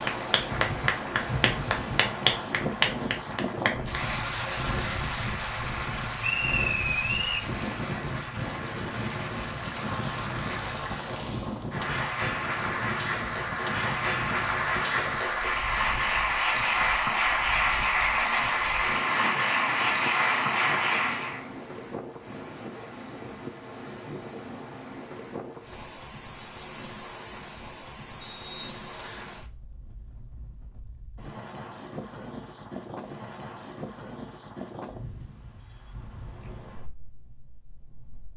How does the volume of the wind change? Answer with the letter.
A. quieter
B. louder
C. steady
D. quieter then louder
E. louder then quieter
A.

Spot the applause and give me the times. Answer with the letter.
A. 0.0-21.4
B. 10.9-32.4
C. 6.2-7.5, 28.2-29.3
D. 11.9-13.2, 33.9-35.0
A.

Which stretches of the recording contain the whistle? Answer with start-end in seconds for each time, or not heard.
6.2-7.5, 28.2-29.3.